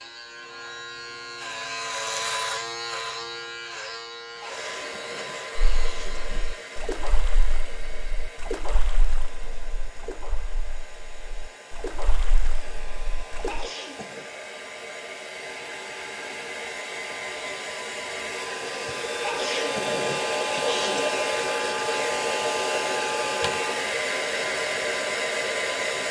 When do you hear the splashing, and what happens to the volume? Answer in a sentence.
You can hear the splashing from 5.5 to 13.7 s, getting quieter then louder.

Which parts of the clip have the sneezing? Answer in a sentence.
You can hear the sneezing from 4.4 to 6.4 s, from 13.4 to 14.3 s and from 19.2 to 21.1 s.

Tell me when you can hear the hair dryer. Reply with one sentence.
You can hear the hair dryer from 4.3 to 26.0 s.